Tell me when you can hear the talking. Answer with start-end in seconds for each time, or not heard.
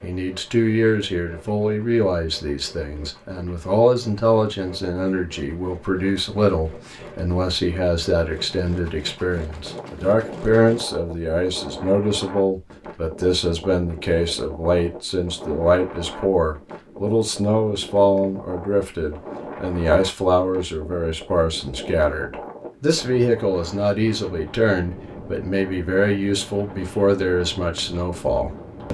0.0-28.8.